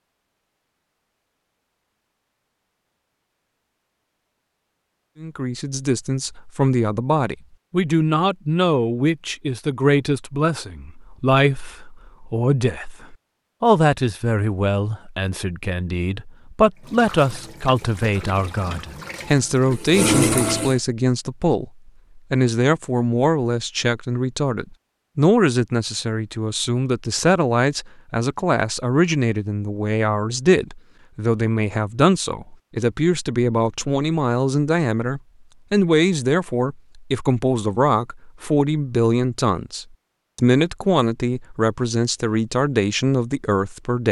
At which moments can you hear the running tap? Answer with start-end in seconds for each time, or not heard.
16.8-20.8.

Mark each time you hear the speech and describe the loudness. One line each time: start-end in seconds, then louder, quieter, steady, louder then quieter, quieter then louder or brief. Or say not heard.
5.2-44.0 steady.